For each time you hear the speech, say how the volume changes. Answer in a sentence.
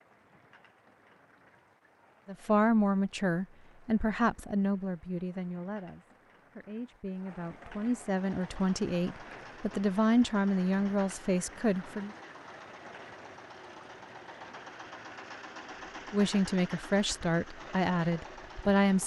The speech can be heard from 2.2 to 12.1 s, getting quieter then louder; and briefly from 16.1 to 19.0 s.